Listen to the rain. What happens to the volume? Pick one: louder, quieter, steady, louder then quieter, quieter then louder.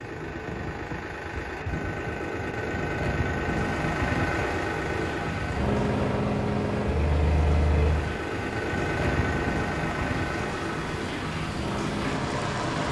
louder.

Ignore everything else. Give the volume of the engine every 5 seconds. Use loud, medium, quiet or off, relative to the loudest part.
loud, loud, medium.